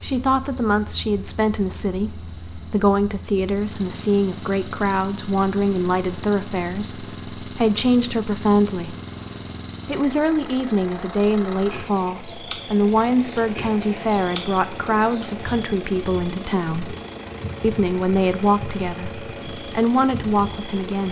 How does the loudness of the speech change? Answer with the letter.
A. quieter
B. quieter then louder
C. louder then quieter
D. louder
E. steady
E.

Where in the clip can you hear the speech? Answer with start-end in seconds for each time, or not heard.
0.0-8.9, 9.8-16.9, 17.6-21.0.